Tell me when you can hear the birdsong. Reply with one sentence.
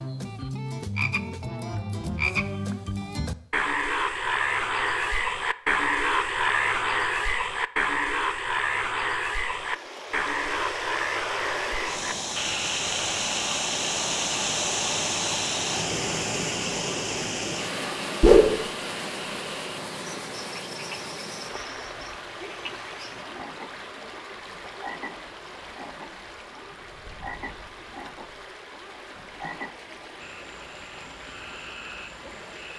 You can't hear the birdsong here.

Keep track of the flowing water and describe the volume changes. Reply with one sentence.
The loudness of the flowing water goes down.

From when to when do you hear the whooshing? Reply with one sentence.
You can hear the whooshing from 18.2 to 18.6 s.